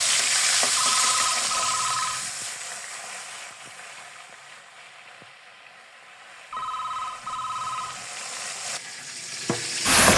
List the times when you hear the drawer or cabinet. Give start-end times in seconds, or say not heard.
not heard.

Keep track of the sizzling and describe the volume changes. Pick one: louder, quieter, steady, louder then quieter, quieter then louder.
quieter then louder.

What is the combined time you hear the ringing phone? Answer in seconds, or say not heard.
3 s.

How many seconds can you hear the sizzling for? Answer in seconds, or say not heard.
10 s.